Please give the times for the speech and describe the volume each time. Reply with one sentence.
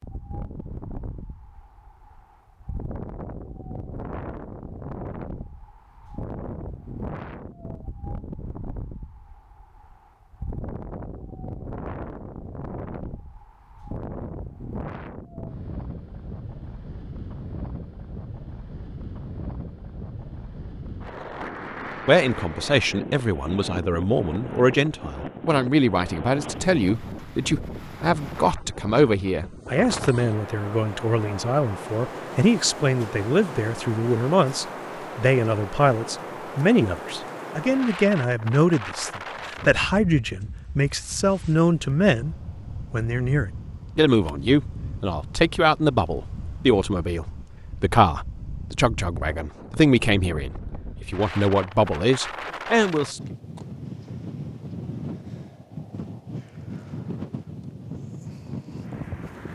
The speech can be heard from 22.1 to 53.2 s, at a steady volume.